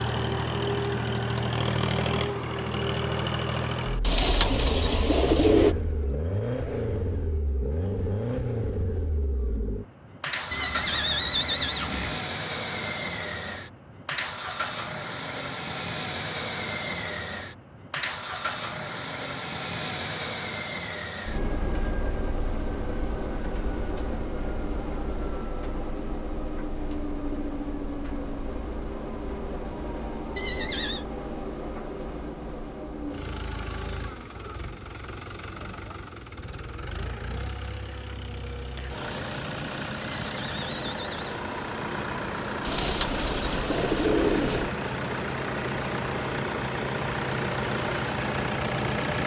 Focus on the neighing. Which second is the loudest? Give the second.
11 s.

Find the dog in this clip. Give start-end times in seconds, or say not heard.
not heard.